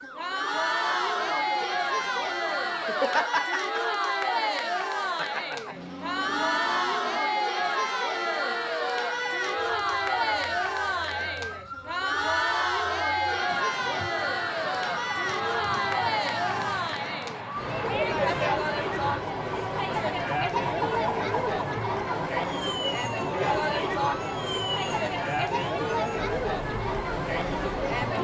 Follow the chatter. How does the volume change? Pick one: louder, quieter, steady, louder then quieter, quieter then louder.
steady.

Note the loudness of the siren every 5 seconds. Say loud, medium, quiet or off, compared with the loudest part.
loud, loud, loud, loud, loud, medium.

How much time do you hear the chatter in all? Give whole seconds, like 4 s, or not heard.
28 s.